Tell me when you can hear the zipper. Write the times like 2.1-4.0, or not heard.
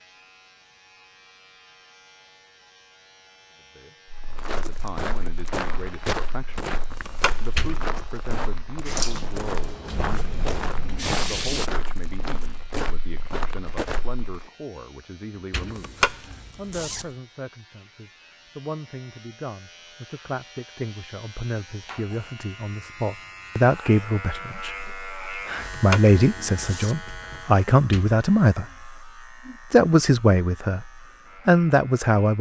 6.9-7.7, 15.7-17.1, 25.7-27.4.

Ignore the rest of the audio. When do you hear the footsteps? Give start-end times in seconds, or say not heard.
4.1-14.4.